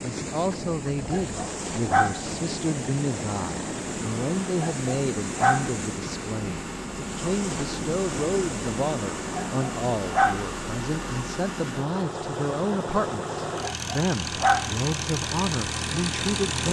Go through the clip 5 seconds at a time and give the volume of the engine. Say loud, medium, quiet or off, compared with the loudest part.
medium, medium, loud, loud.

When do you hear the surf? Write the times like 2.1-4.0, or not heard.
0.0-16.6.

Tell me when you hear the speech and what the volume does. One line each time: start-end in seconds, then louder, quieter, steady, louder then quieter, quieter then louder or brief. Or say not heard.
0.0-16.6 steady.